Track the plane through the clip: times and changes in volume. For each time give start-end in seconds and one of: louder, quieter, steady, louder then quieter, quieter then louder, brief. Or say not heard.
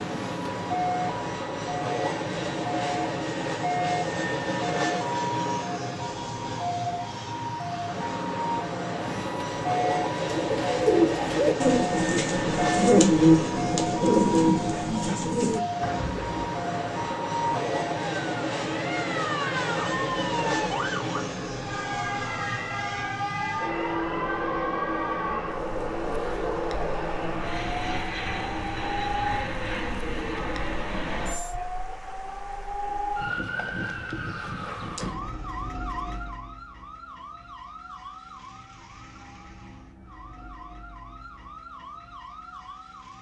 0.0-31.6 steady.